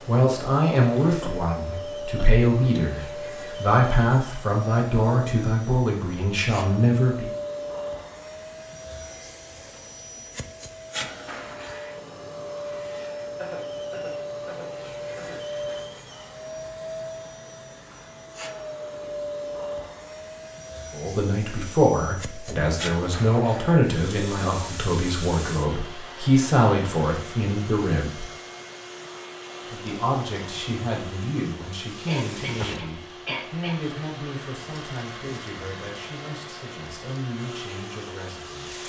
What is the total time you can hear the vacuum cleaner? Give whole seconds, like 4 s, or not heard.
39 s.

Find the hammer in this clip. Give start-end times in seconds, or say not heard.
not heard.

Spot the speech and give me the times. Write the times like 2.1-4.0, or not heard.
0.1-7.3, 20.9-28.2, 29.6-38.8.